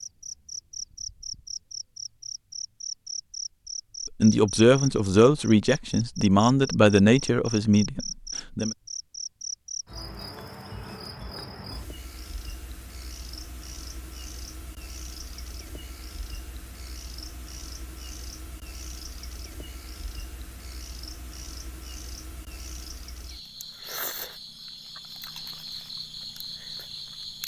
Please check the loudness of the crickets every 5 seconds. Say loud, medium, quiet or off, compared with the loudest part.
loud, loud, medium, medium, medium, loud.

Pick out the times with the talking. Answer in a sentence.
You can hear the talking from 4.2 to 8.8 s.